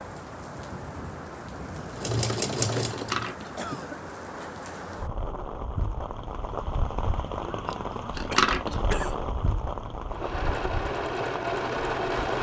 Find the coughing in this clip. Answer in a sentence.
The coughing can be heard from 3.5 to 4.6 s and from 8.3 to 9.2 s.